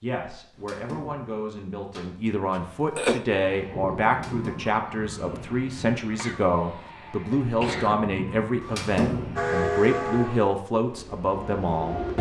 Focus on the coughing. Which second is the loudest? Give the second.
3 s.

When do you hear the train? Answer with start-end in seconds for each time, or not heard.
9.3-12.1.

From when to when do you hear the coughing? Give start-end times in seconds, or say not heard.
2.5-3.2, 6.2-8.0.